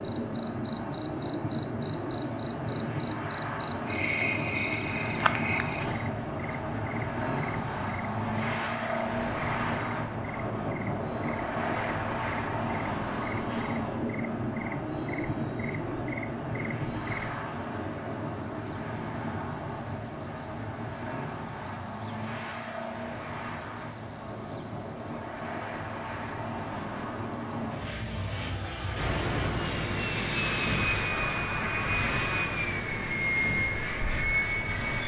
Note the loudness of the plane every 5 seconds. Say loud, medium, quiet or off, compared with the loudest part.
loud, loud, loud, loud, medium, medium, loud.